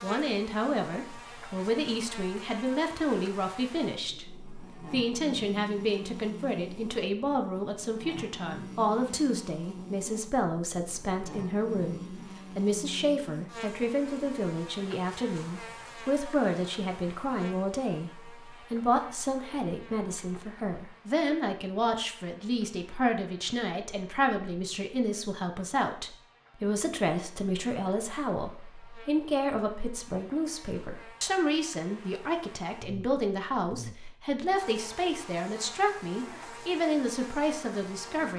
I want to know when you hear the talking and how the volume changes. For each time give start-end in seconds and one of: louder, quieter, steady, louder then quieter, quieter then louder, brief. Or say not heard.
0.0-38.3 steady.